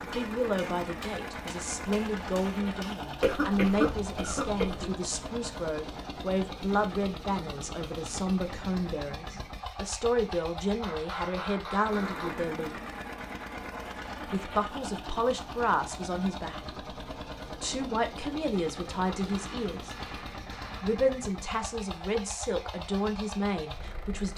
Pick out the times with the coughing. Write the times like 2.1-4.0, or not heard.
3.2-5.0.